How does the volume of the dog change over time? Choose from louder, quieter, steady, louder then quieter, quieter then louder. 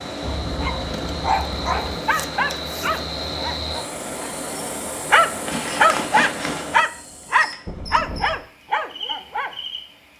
louder then quieter.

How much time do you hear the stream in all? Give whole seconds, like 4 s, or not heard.
10 s.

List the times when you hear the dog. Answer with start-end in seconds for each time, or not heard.
0.2-9.6.